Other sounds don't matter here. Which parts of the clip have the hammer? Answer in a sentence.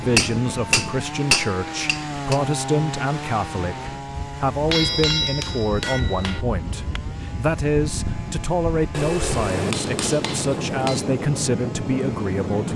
You can hear the hammer from 0.1 to 2.4 s, from 4.7 to 6.4 s and from 8.9 to 11.1 s.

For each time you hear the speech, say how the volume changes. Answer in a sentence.
You can hear the speech from 0.0 to 12.7 s, at a steady volume.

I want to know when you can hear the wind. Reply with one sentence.
You can hear the wind from 0.0 to 12.7 s.